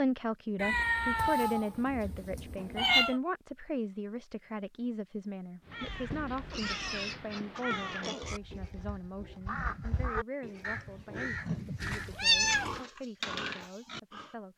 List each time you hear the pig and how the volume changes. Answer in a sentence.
You can hear the pig from 6.5 to 14.3 s, getting quieter then louder.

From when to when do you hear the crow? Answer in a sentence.
You can hear the crow from 5.6 to 12.2 s.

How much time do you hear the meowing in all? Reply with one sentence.
You can hear the meowing for 5 seconds altogether.